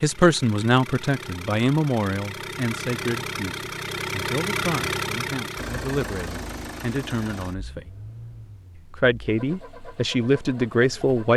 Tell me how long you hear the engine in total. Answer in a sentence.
The engine can be heard for 11 seconds in total.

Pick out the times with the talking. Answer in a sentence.
You can hear the talking from 0.0 to 7.9 s and from 8.8 to 11.3 s.